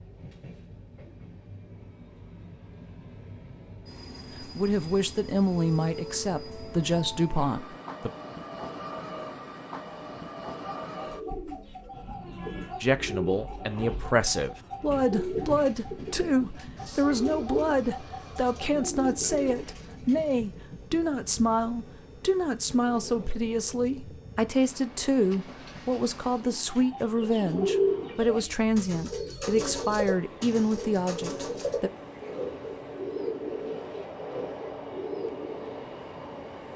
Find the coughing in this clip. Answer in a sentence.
The coughing can't be heard in this clip.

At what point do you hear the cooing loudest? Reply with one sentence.
The loudest moment of the cooing is at 28 seconds.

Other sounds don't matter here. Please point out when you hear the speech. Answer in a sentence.
The speech can be heard from 4.4 to 8.1 s and from 12.8 to 31.9 s.